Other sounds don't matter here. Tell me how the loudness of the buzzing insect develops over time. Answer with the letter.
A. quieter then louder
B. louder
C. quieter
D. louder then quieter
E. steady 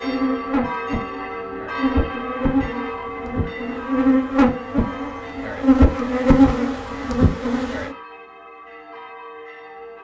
B.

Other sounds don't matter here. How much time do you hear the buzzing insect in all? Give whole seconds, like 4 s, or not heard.
8 s.